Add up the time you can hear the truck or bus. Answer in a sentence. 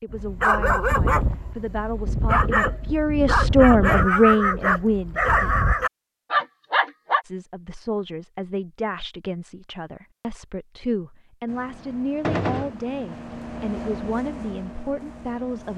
You can hear the truck or bus for 4 seconds altogether.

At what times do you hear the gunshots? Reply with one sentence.
The gunshots can be heard from 12.2 to 12.8 s.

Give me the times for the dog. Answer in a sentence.
The dog can be heard from 0.1 to 7.2 s.